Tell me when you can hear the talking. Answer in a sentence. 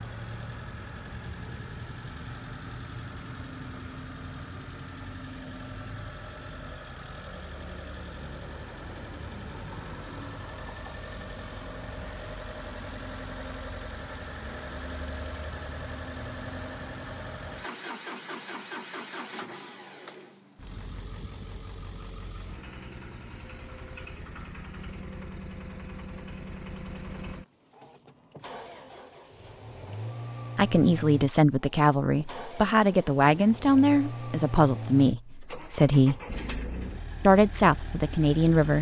The talking can be heard from 30.6 to 36.2 s and from 37.2 to 38.7 s.